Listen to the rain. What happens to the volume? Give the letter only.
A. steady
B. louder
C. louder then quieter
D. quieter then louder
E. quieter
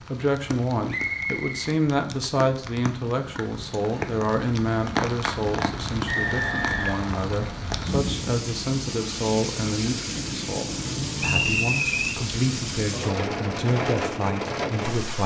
B.